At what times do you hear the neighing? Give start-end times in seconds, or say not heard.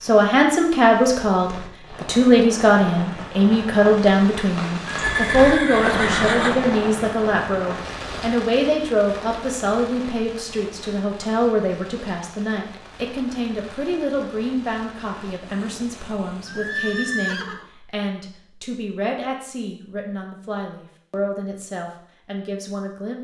4.8-6.5, 16.4-17.6.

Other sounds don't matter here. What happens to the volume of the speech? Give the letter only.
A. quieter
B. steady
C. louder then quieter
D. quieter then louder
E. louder
A.